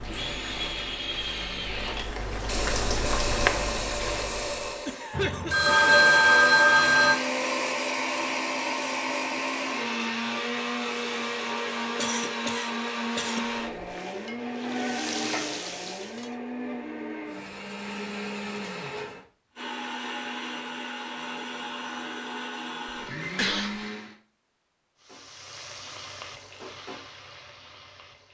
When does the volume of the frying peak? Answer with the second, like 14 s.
3 s.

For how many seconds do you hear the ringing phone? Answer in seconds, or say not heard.
3 s.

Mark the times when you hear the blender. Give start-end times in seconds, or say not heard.
0.0-24.1.